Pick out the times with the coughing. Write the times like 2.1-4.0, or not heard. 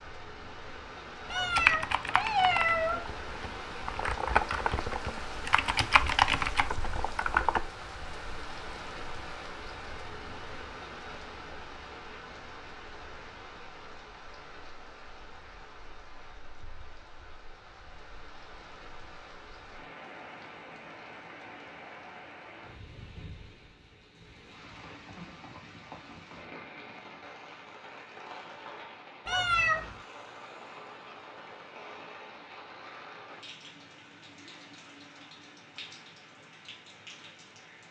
not heard.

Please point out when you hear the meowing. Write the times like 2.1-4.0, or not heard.
1.2-3.0, 29.2-29.9.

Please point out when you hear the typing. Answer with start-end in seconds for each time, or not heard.
1.6-7.6.